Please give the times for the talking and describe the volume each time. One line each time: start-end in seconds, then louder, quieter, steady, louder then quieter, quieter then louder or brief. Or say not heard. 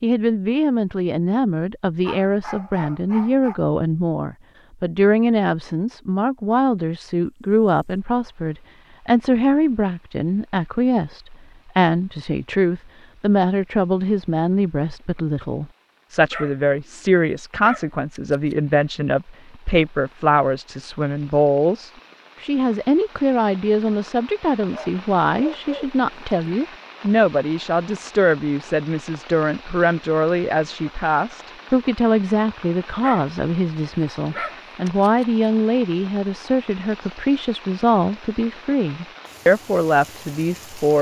0.0-40.9 steady.